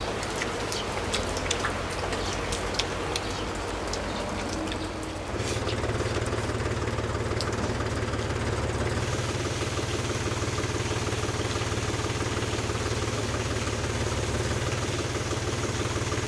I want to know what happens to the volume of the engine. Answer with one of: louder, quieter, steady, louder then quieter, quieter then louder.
louder.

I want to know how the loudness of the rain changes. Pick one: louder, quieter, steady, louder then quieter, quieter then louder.
quieter.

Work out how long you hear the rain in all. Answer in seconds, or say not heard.
16 s.